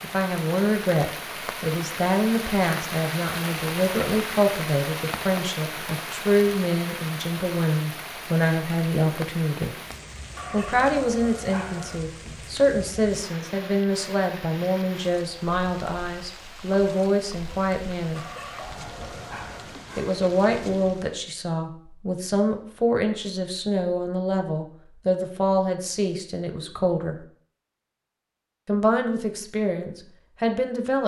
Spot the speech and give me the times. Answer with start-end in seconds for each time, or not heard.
0.0-9.8, 10.5-18.2, 19.9-27.1, 28.6-31.0.